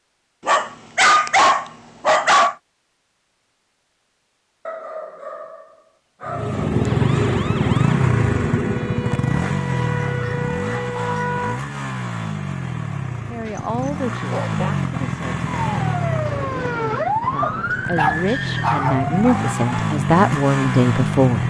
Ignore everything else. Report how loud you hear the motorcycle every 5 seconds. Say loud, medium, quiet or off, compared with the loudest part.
off, loud, medium, medium, loud.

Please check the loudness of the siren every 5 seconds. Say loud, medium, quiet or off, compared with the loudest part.
off, medium, loud, loud, off.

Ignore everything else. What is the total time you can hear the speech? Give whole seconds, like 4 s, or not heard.
8 s.